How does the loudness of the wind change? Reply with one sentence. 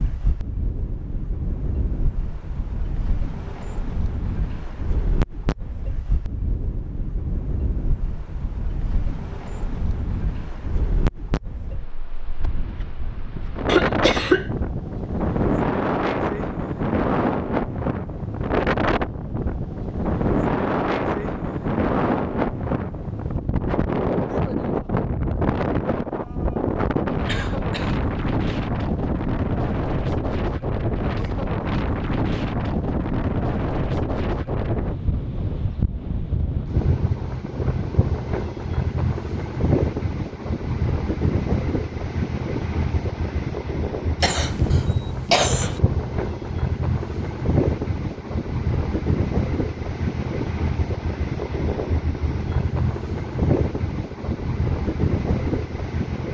The loudness of the wind goes up.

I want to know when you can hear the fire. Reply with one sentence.
You can't hear the fire here.